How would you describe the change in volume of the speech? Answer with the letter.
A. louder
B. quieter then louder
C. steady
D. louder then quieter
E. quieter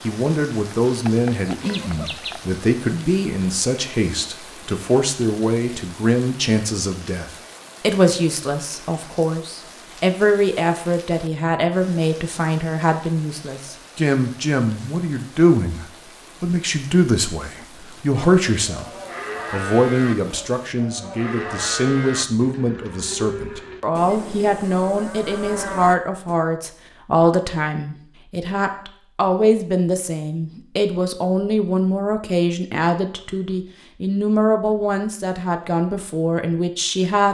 C.